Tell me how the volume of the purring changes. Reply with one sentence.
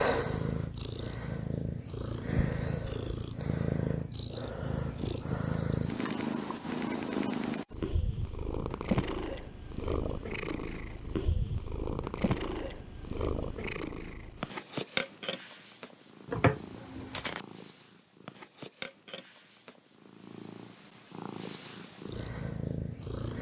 The loudness of the purring goes down.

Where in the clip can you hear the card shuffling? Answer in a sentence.
You can hear the card shuffling from 16.2 to 17.4 s.